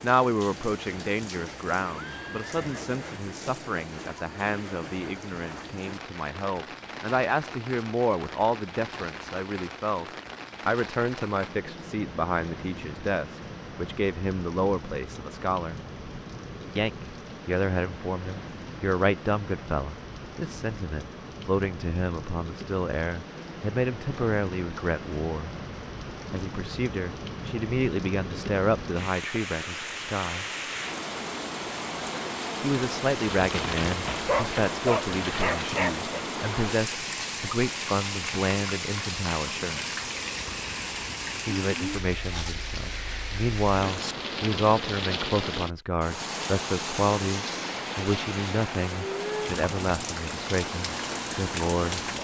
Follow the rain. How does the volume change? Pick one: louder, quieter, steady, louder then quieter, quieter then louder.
louder.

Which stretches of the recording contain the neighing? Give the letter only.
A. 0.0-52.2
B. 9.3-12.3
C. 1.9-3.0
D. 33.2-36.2
C.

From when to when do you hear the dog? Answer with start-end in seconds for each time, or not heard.
33.2-36.2.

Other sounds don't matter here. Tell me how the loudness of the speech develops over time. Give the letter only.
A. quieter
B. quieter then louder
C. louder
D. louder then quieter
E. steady
E.